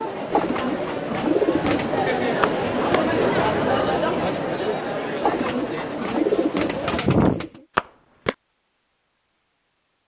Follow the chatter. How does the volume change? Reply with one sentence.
The volume of the chatter goes up, then down.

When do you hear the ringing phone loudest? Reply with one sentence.
The loudest moment of the ringing phone is at 8 seconds.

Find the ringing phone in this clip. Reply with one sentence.
The ringing phone can be heard from 2.4 to 3.0 s and from 7.8 to 8.3 s.